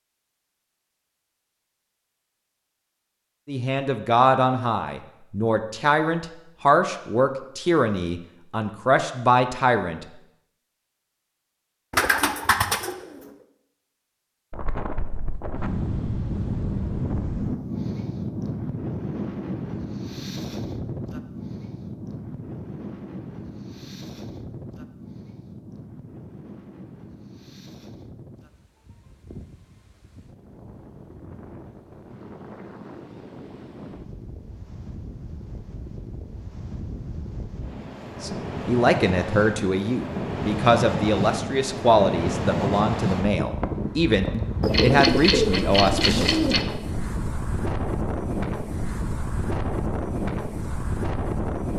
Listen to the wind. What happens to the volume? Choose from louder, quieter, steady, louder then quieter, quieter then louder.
quieter then louder.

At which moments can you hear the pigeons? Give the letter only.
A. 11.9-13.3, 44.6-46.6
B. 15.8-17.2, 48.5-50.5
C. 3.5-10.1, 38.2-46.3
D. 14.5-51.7
A.